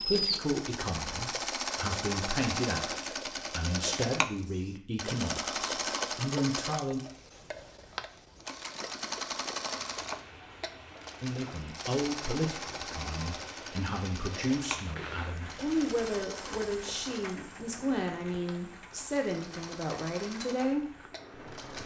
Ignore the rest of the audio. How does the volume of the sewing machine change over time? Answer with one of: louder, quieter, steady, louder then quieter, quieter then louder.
quieter.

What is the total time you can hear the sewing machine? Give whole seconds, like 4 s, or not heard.
22 s.